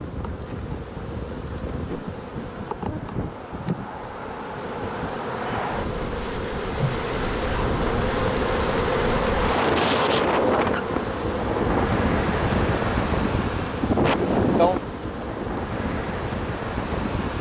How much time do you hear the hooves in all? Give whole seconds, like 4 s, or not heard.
not heard.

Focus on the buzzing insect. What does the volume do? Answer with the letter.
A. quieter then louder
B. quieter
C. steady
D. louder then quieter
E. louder
D.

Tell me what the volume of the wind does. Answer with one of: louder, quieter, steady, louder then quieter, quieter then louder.
louder.